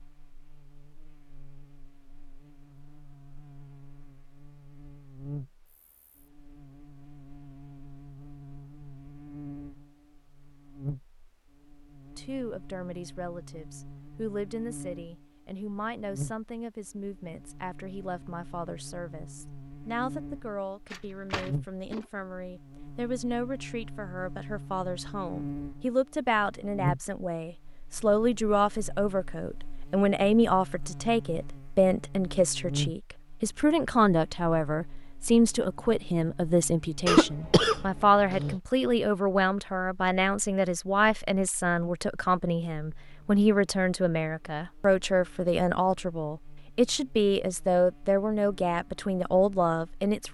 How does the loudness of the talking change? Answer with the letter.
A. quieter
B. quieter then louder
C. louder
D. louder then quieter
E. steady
C.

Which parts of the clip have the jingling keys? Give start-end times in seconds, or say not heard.
20.9-22.1.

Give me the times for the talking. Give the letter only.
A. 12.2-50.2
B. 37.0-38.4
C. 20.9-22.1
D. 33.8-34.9
A.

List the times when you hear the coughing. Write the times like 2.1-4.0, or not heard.
37.0-38.4.